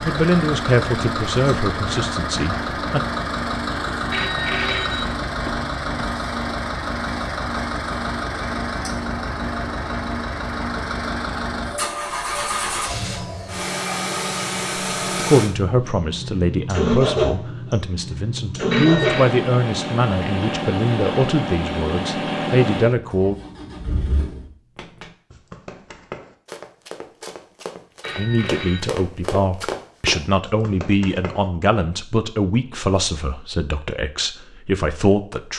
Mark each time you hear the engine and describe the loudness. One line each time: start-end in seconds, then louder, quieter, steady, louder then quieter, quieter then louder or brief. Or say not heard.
0.0-24.5 steady.